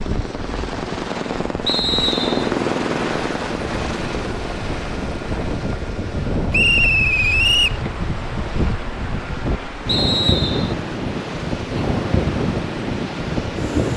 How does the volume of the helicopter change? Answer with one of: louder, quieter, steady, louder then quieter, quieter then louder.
quieter.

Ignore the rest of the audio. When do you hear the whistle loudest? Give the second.
7 s.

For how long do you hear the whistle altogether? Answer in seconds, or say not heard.
3 s.